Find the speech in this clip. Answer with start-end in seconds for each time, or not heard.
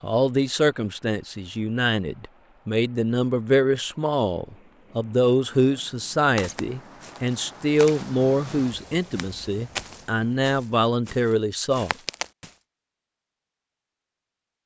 0.0-11.9.